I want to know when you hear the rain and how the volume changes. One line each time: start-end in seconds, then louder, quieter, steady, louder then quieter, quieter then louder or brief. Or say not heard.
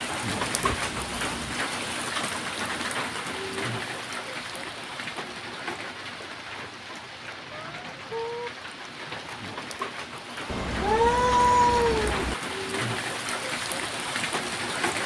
0.0-15.0 quieter then louder.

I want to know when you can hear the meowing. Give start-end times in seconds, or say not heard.
0.4-1.6, 7.5-8.5, 10.4-12.3.